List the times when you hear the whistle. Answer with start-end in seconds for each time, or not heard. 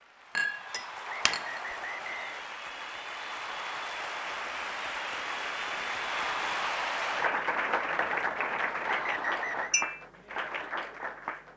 1.1-2.5, 8.8-9.8.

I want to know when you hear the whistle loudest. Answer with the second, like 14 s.
9 s.